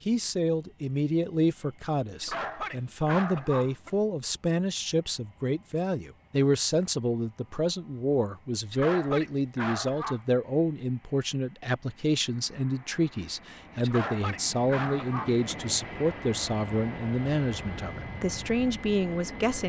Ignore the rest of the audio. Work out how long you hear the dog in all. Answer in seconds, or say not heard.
5 s.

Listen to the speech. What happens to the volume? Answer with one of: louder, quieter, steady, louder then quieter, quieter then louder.
steady.